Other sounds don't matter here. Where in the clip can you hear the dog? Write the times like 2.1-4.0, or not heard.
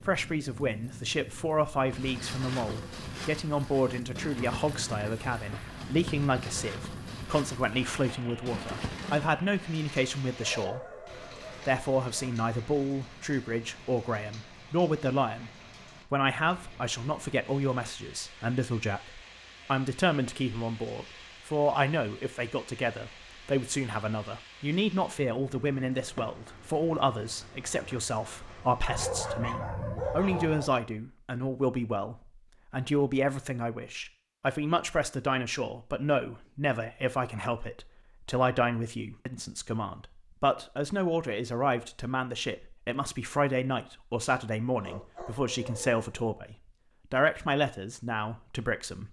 10.3-12.3, 28.9-30.8, 44.1-46.0.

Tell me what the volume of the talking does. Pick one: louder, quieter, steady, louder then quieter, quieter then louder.
steady.